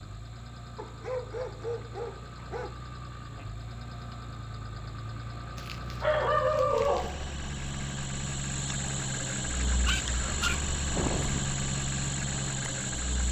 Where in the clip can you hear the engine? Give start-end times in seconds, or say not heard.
0.0-13.2.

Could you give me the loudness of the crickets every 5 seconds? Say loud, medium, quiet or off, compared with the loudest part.
quiet, loud, loud.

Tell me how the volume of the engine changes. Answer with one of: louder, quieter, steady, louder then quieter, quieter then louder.
louder.